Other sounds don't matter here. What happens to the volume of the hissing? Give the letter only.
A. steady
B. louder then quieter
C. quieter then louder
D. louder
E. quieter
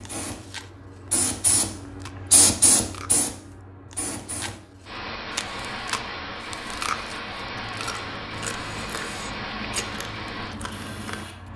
E.